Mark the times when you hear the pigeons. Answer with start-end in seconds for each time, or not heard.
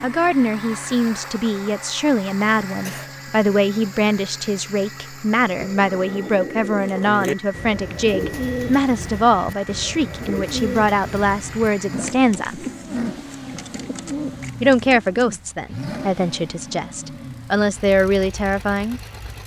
5.5-15.4.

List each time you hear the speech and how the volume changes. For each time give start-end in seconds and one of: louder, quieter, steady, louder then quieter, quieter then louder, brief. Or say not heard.
0.0-12.7 steady
14.6-19.0 quieter then louder.